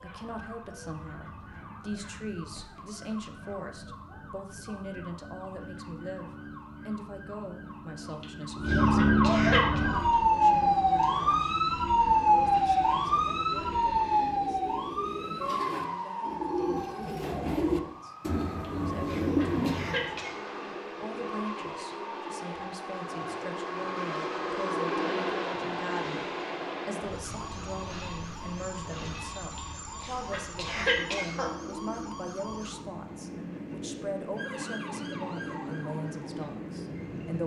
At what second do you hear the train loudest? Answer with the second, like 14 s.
25 s.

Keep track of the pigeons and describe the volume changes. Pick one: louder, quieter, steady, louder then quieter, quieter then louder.
louder.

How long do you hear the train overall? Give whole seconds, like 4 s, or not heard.
18 s.